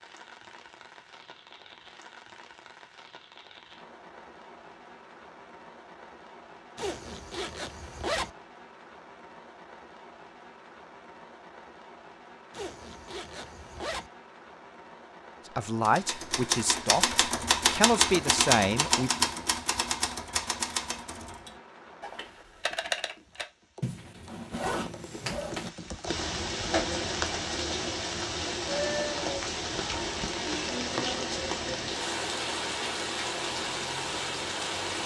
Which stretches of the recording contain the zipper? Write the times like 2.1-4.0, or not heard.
6.8-8.3, 12.5-14.1, 23.8-25.7.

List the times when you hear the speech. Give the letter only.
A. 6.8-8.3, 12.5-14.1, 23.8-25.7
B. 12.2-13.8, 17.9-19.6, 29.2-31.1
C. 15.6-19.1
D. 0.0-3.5
C.